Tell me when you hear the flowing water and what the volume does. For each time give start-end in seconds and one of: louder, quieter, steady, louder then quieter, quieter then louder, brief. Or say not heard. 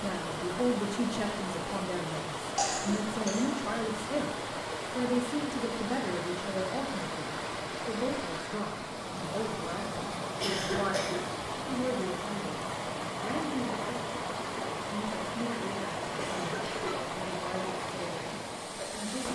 0.0-19.3 steady.